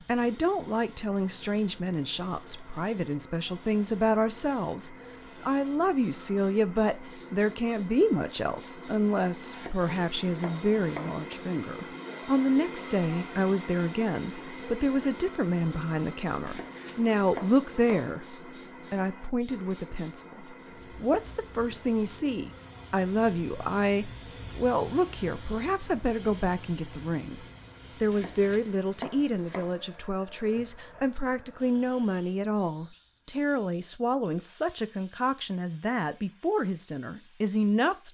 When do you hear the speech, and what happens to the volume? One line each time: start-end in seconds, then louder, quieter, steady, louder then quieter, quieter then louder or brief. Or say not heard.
0.1-38.0 steady.